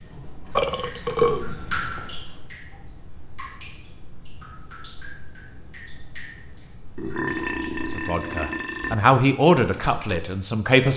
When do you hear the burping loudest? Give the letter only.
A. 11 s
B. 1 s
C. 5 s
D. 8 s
B.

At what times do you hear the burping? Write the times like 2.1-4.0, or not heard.
0.6-1.6, 7.0-8.9.